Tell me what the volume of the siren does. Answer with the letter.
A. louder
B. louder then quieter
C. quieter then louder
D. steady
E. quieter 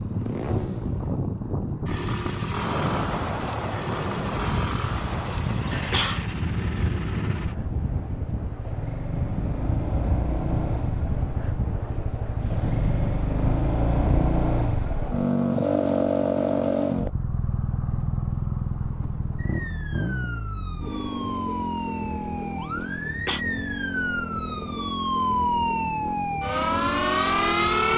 A.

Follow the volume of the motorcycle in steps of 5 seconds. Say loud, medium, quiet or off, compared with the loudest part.
medium, medium, loud, loud, medium, medium.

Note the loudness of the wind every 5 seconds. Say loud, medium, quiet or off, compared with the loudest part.
loud, loud, loud, off, off, off.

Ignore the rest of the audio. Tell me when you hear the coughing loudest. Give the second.
6 s.